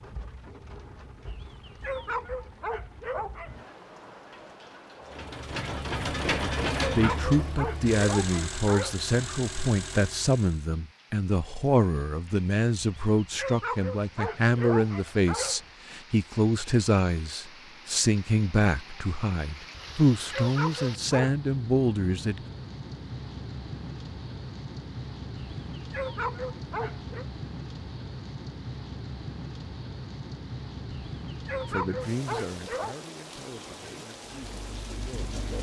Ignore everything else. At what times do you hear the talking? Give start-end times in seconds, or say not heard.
7.0-22.4, 31.7-35.4.